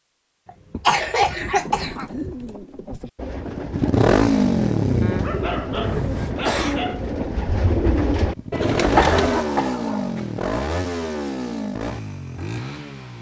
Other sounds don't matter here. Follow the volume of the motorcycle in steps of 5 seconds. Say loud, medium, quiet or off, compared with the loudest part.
loud, medium, medium.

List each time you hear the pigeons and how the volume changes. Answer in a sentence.
You can hear the pigeons from 1.6 to 9.4 s, getting louder.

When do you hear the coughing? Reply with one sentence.
You can hear the coughing from 0.5 to 1.9 s, from 5.8 to 6.8 s and from 8.9 to 10.2 s.